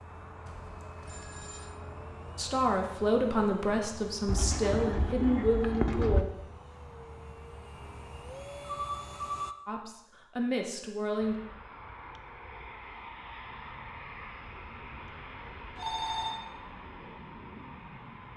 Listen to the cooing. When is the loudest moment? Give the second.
6 s.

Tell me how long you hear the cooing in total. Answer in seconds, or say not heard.
2 s.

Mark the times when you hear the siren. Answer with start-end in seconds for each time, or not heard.
not heard.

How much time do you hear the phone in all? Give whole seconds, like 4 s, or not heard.
3 s.